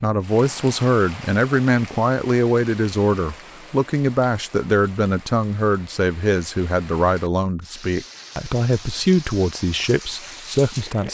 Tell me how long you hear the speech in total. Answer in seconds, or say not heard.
11 s.